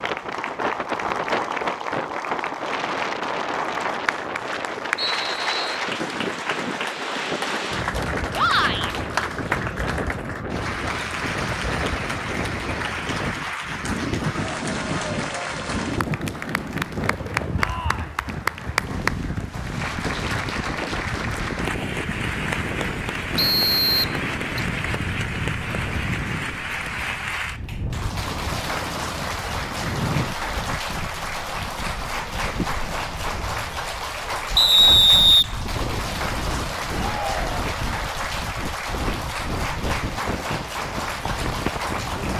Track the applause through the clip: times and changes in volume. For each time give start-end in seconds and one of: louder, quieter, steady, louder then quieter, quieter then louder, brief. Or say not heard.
0.0-42.3 steady.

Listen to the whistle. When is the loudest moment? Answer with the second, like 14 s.
35 s.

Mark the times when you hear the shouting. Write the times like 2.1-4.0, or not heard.
8.3-8.9, 17.6-18.2, 37.0-37.6.